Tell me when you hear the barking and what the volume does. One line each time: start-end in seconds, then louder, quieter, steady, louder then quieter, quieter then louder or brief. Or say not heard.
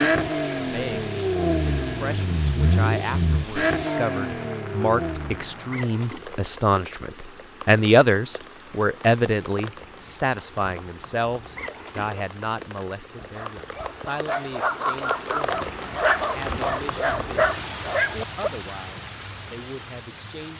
13.2-18.5 louder.